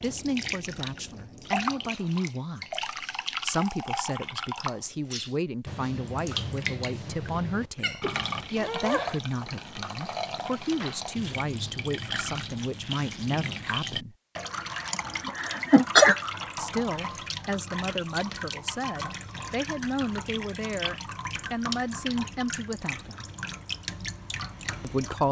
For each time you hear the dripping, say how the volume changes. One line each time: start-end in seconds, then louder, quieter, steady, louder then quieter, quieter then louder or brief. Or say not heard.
0.0-25.2 steady.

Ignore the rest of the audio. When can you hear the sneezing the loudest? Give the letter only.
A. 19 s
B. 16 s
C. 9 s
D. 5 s
B.